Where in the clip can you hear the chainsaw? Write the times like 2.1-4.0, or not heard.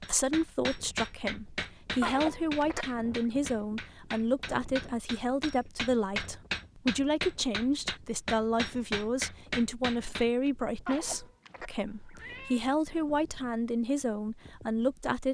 not heard.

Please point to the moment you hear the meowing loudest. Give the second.
2 s.